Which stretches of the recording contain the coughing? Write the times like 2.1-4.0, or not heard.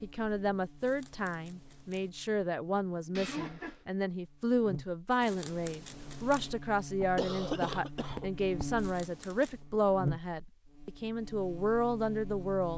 3.1-3.9, 7.0-8.8.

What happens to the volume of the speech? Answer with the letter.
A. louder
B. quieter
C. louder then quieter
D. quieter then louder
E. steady
E.